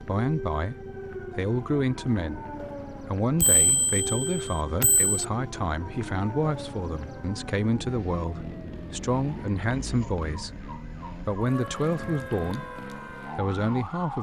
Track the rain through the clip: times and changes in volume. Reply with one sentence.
The rain can't be heard in this clip.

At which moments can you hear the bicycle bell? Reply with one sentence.
The bicycle bell can be heard from 3.4 to 5.2 s.